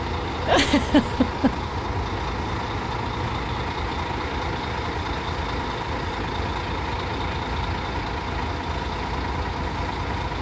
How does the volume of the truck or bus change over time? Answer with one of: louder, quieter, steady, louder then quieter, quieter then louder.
steady.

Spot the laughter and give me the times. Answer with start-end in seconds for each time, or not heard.
0.5-1.6.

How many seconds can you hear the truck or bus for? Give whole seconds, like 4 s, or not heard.
10 s.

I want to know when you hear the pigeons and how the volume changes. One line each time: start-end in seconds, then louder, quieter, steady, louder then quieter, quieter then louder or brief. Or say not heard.
not heard.